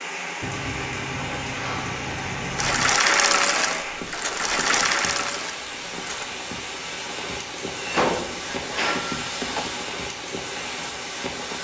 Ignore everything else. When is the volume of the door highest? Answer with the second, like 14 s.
8 s.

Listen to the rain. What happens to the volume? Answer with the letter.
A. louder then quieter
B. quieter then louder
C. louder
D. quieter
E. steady
E.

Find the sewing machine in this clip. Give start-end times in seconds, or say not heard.
2.5-6.3.